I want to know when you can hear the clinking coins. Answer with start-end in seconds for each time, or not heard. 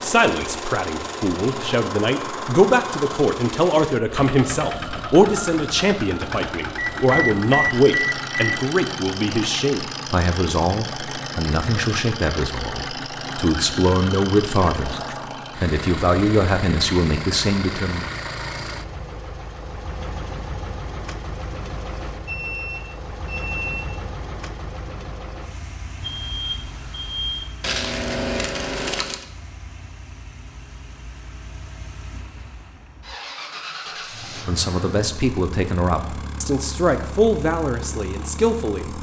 27.6-29.3.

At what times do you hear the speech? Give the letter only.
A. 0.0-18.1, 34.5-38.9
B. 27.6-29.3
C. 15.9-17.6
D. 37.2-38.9
A.